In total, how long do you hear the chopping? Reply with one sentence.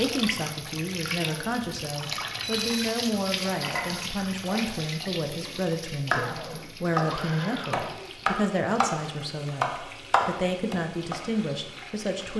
The chopping can be heard for 7 seconds in total.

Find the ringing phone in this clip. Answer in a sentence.
The ringing phone can be heard from 2.4 to 2.9 s.